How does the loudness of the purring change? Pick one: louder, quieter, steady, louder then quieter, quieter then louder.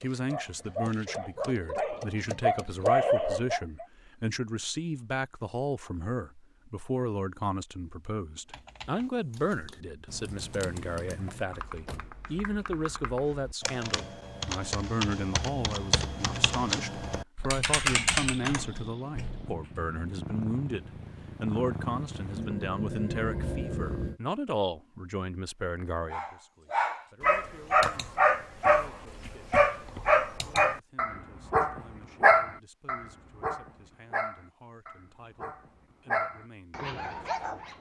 louder.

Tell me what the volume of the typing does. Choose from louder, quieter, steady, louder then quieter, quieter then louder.
louder.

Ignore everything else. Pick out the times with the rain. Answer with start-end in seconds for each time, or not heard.
not heard.